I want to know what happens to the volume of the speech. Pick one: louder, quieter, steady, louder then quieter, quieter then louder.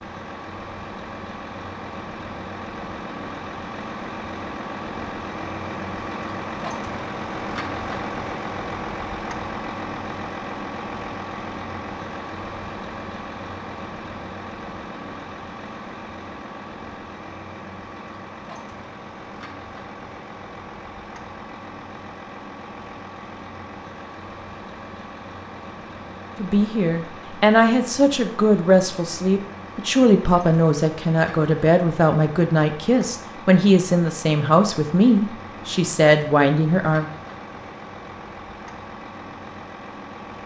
steady.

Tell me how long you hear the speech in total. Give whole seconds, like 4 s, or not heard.
11 s.